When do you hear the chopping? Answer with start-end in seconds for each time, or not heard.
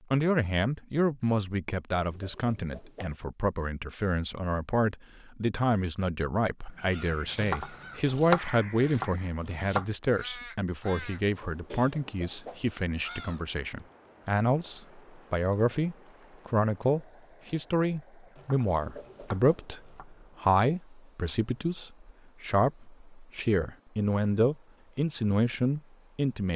7.3-9.8, 18.4-20.1.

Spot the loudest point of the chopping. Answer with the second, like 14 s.
8 s.